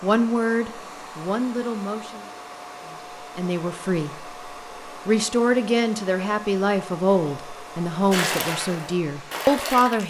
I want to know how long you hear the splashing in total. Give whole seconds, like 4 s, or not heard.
2 s.